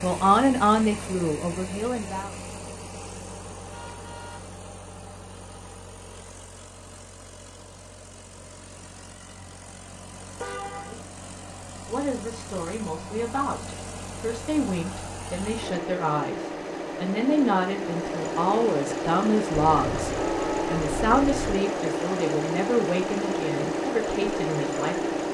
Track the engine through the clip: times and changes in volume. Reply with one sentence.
You can hear the engine from 0.0 to 25.2 s, getting quieter then louder.